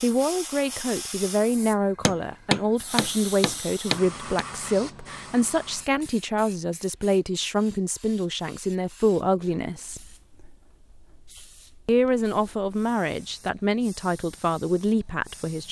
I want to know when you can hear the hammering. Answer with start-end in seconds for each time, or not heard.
2.0-4.5.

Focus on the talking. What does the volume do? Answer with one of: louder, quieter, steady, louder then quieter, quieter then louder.
steady.